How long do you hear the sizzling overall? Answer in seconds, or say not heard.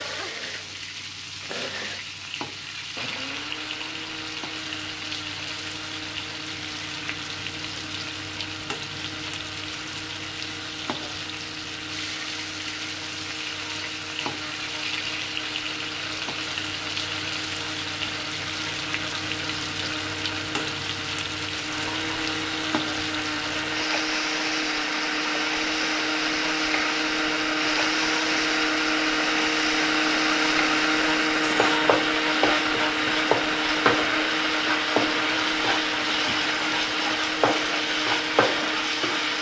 39 s.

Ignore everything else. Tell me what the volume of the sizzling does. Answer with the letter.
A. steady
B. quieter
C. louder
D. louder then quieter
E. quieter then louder
C.